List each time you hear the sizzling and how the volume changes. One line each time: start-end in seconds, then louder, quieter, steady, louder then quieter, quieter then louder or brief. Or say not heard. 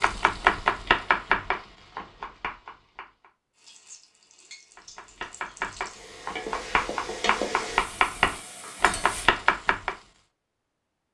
3.5-9.3 louder then quieter.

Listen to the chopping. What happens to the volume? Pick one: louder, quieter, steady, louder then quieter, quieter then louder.
quieter then louder.